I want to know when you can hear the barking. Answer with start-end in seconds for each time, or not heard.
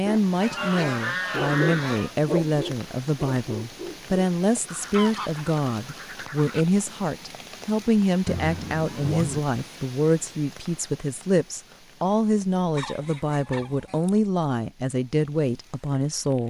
0.0-4.2.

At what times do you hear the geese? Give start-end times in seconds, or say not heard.
0.4-2.1, 4.7-6.7, 8.2-9.4, 12.8-14.2.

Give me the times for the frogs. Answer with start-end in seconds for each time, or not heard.
not heard.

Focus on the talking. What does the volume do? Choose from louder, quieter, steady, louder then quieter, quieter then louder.
steady.